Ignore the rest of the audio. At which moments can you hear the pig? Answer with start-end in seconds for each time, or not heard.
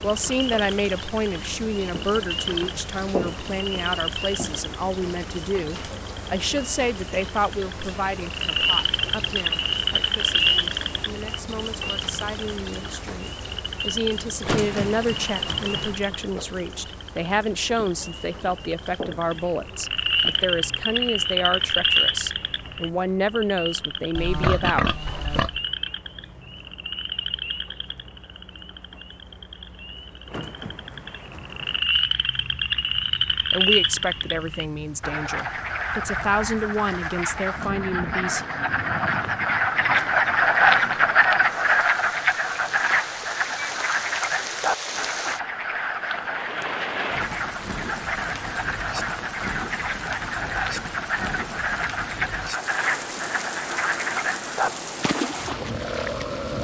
24.1-25.6.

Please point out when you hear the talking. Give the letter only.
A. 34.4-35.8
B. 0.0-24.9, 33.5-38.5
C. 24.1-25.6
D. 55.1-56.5
B.